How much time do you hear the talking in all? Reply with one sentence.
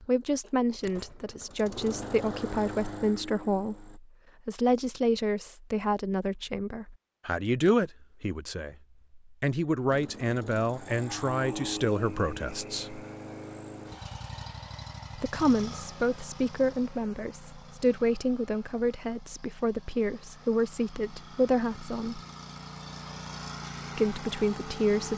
The talking can be heard for 21 seconds in total.